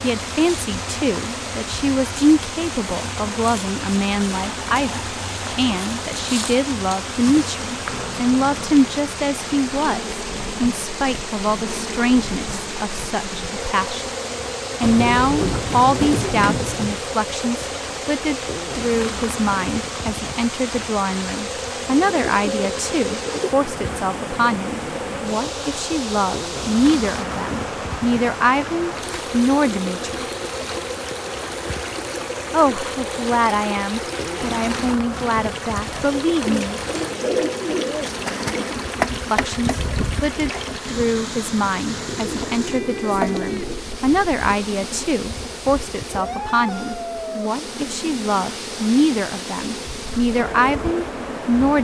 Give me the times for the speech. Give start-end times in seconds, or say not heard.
0.0-14.1, 14.8-30.2, 32.5-36.8, 39.3-51.7.